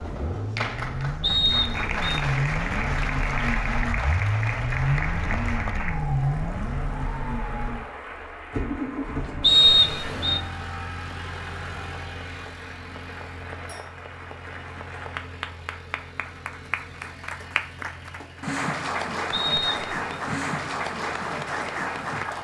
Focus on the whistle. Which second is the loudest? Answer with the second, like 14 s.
10 s.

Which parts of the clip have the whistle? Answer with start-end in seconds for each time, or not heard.
1.2-2.2, 9.4-10.4, 19.3-19.9.